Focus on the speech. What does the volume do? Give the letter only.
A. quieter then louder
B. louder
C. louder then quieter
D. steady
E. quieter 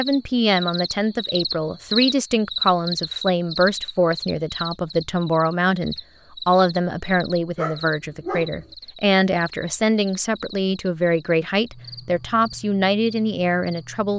D.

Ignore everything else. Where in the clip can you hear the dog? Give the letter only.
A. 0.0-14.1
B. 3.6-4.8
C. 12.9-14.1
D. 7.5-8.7
D.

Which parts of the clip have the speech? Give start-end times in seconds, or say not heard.
0.0-14.1.